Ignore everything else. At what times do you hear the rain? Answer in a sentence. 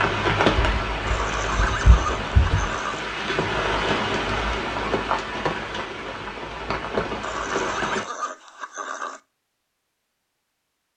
You can hear the rain from 0.0 to 8.1 s.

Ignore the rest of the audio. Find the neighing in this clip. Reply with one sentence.
The neighing can be heard from 1.1 to 3.0 s and from 7.2 to 9.2 s.